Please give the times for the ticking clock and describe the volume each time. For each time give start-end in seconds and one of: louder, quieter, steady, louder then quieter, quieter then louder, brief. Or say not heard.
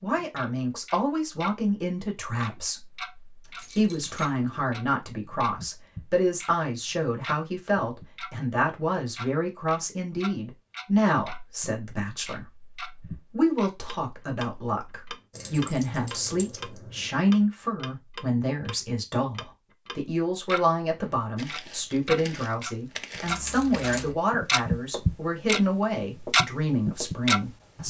0.1-1.6 brief
2.4-20.6 steady
21.4-27.8 louder.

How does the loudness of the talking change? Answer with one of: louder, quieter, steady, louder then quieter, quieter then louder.
steady.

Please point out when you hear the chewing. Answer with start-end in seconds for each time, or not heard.
not heard.